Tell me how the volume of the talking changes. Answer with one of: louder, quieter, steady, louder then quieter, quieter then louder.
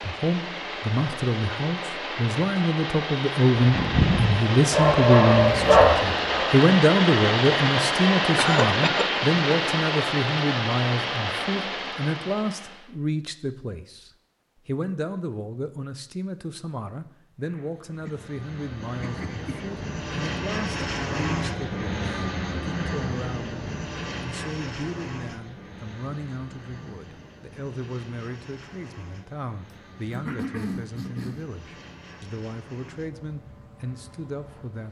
quieter.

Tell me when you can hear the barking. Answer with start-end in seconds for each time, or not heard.
3.6-6.5.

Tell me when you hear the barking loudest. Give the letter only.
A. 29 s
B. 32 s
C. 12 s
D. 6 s
D.